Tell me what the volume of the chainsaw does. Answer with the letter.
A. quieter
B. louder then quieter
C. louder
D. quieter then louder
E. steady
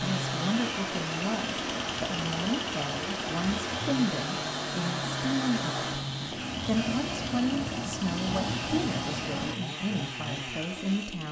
E.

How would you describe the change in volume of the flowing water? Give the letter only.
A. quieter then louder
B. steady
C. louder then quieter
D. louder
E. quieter
B.